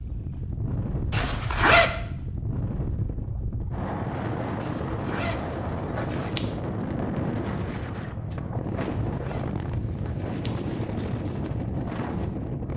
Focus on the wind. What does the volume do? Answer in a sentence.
The volume of the wind stays about the same.